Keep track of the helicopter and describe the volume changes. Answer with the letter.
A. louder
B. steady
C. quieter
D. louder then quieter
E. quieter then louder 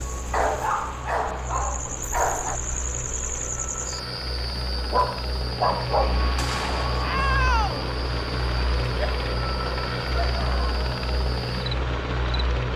A.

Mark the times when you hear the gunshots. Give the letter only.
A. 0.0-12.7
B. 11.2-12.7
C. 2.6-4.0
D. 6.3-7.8
D.